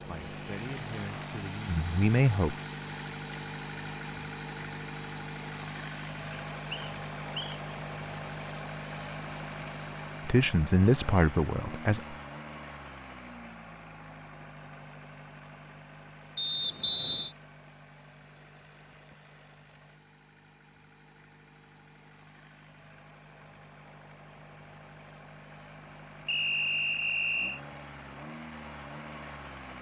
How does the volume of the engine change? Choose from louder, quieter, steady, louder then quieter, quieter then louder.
quieter then louder.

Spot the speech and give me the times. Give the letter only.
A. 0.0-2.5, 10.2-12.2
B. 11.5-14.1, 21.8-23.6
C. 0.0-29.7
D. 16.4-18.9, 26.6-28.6
A.